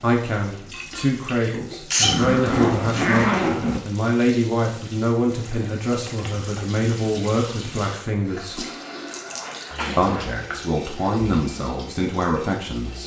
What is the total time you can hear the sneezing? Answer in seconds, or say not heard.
2 s.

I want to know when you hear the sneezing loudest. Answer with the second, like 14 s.
2 s.